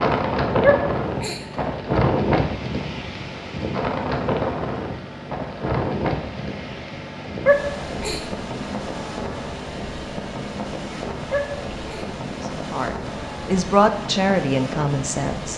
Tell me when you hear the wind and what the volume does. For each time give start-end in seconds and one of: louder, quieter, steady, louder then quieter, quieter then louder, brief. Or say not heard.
0.0-15.5 quieter.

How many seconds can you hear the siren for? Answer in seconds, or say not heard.
not heard.